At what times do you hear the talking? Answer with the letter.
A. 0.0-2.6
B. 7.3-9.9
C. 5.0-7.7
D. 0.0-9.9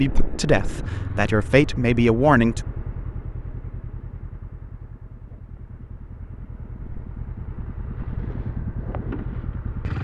A.